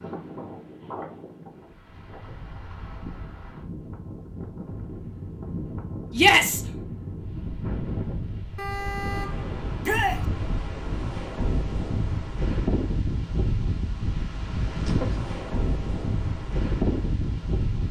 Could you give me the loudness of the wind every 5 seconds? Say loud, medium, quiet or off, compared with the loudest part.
medium, medium, loud, loud.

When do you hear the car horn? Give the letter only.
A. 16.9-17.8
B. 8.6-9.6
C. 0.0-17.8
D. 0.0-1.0
B.